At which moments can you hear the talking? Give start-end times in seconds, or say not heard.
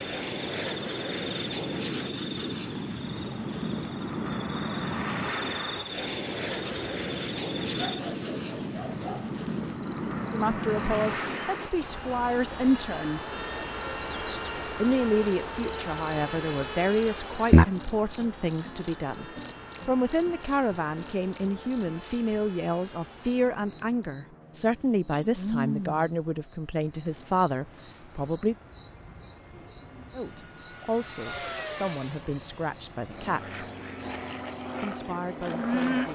10.3-13.2, 14.8-19.2, 19.9-28.6, 30.1-33.6, 34.8-36.1.